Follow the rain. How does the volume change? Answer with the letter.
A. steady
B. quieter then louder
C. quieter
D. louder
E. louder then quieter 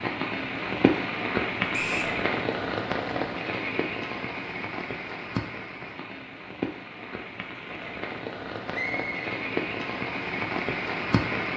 B.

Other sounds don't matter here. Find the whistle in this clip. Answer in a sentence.
You can hear the whistle from 1.7 to 2.1 s and from 8.7 to 9.3 s.